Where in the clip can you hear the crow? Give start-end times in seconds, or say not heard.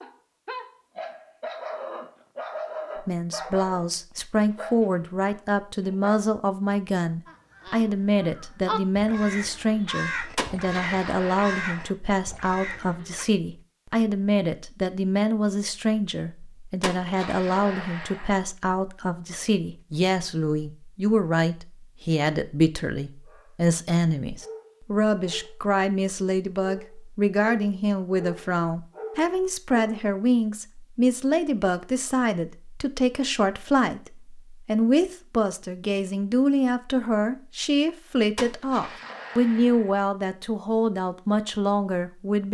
7.2-13.2.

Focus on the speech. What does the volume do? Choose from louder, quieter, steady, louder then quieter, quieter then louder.
steady.